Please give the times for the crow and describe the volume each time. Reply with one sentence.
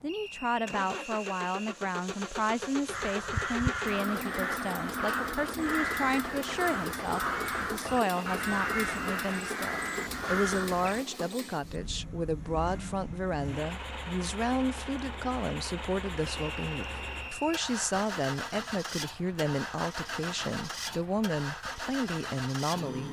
The crow can be heard from 2.9 to 11.0 s, at a steady volume.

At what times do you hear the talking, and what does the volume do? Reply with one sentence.
The talking can be heard from 0.0 to 23.0 s, at a steady volume.